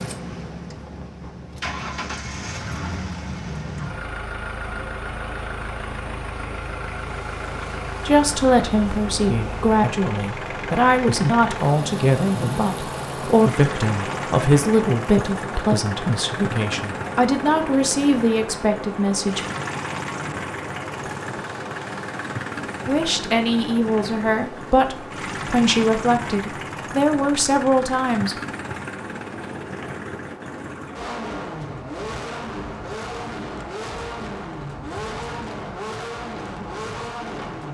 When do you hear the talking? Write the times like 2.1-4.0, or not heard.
8.1-19.6, 22.9-28.4.